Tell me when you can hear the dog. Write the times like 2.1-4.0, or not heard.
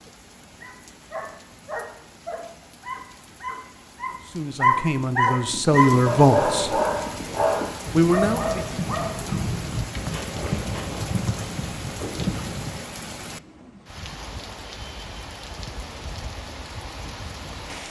0.6-9.4.